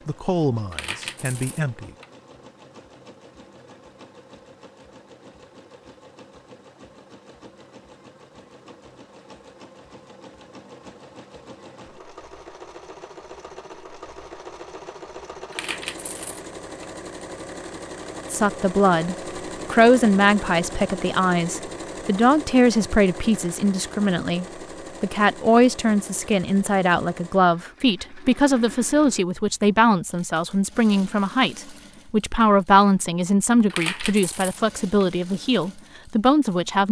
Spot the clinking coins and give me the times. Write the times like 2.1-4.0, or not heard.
0.7-2.0, 15.5-16.9, 33.7-35.0.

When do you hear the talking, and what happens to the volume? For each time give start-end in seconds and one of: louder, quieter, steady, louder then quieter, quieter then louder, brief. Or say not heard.
0.1-1.9 brief
18.3-36.8 steady.